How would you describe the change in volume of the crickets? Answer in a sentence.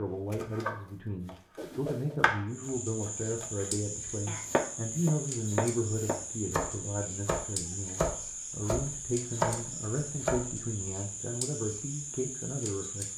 The volume of the crickets stays about the same.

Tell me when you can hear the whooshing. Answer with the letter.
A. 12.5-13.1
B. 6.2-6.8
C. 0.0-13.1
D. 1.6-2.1
D.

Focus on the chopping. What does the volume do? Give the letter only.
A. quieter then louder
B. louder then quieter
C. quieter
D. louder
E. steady
A.